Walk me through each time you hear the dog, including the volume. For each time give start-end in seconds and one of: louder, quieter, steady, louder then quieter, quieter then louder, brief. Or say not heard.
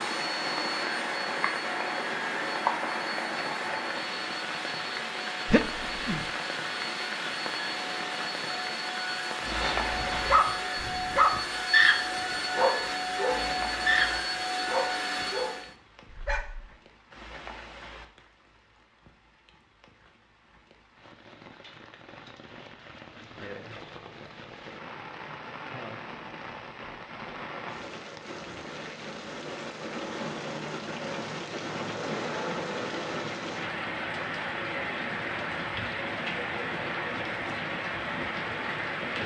9.5-16.8 louder then quieter.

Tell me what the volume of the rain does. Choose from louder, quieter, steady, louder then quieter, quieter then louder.
quieter then louder.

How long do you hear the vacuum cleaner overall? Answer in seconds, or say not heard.
16 s.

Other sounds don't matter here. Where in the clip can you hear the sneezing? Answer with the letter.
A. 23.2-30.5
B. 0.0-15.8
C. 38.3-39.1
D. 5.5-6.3
D.